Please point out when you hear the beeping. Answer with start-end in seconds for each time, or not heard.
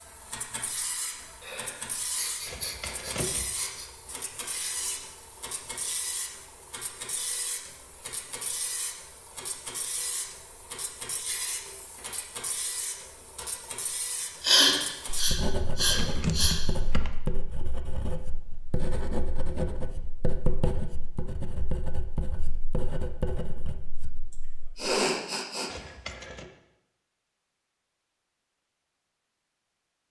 not heard.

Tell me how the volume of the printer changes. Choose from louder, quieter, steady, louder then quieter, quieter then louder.
steady.